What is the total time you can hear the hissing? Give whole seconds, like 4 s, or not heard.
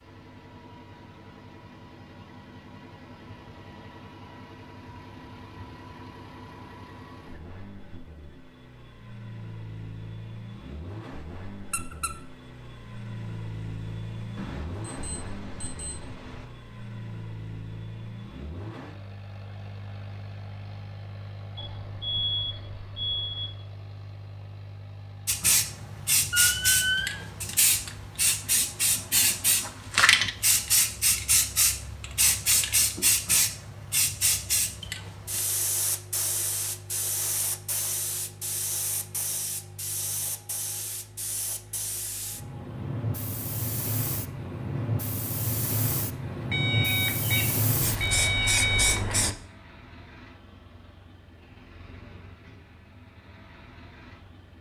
24 s.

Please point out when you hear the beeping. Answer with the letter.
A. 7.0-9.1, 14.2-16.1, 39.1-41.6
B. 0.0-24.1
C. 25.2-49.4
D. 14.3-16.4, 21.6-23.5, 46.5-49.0
D.